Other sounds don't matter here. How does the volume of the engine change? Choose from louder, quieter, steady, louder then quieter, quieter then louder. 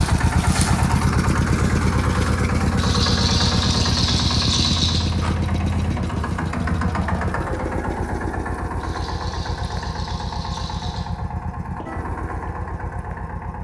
quieter.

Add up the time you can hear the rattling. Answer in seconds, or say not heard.
5 s.